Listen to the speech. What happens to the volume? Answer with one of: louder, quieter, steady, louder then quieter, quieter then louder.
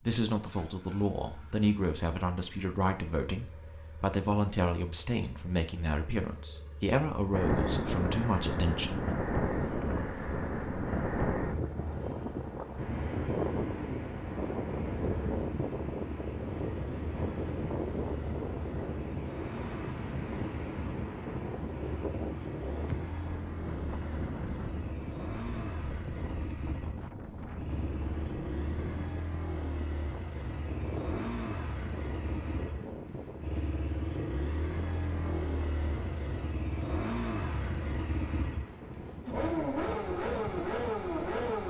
steady.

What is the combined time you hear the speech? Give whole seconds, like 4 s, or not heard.
9 s.